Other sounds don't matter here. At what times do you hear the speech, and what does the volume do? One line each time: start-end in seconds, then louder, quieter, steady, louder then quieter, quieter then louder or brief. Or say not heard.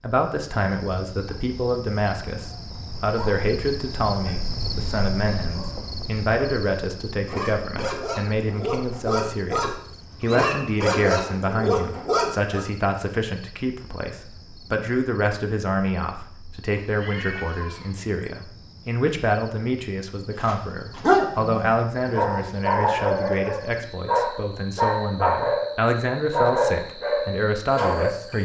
0.0-28.4 steady.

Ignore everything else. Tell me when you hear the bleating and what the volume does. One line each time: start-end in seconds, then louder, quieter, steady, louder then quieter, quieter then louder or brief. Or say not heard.
not heard.